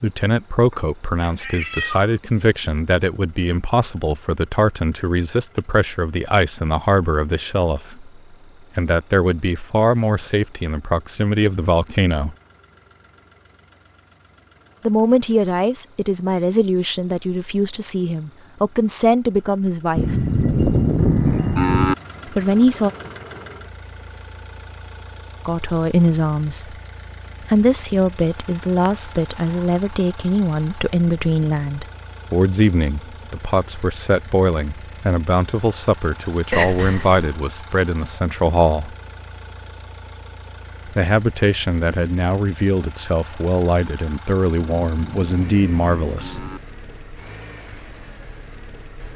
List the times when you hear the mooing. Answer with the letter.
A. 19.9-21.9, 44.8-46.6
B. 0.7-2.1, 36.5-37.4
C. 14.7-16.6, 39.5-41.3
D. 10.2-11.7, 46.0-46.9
A.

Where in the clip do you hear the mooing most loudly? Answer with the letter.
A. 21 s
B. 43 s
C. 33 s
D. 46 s
A.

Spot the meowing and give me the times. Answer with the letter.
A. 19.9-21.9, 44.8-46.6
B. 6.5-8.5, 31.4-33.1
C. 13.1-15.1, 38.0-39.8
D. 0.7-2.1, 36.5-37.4
D.